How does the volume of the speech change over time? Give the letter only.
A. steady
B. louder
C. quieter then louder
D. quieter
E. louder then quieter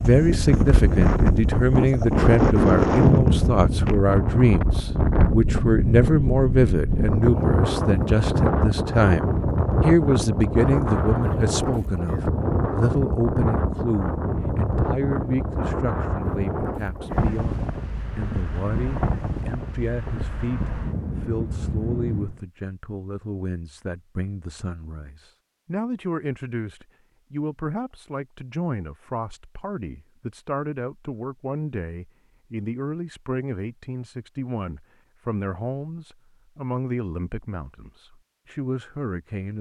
D.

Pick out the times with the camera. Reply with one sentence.
You can't hear the camera here.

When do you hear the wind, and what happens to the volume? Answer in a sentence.
The wind can be heard from 0.0 to 22.4 s, getting quieter.